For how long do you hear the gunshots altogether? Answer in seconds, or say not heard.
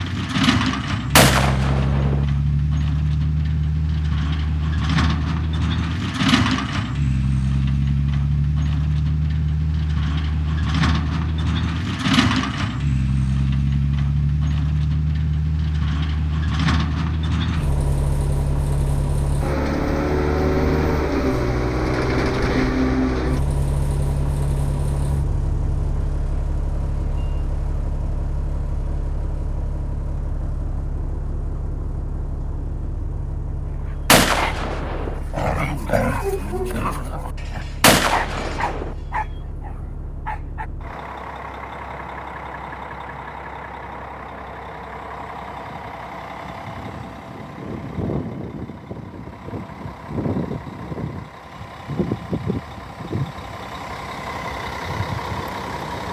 3 s.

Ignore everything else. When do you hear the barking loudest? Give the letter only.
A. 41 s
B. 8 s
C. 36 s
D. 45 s
C.